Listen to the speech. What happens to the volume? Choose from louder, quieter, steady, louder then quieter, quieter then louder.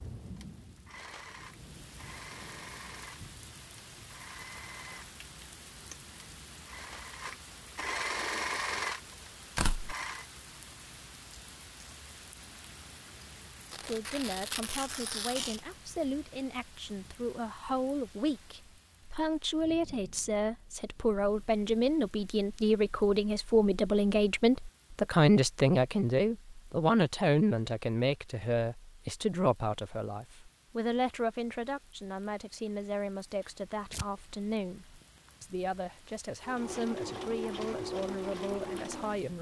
louder then quieter.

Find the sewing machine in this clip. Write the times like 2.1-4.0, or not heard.
0.1-10.2, 36.4-39.3.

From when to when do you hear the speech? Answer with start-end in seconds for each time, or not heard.
13.8-39.3.